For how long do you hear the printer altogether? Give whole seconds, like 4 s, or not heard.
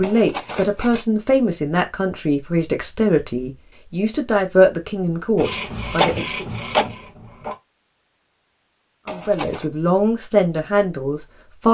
2 s.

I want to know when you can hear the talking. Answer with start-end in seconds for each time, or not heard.
0.0-6.5, 9.1-11.6.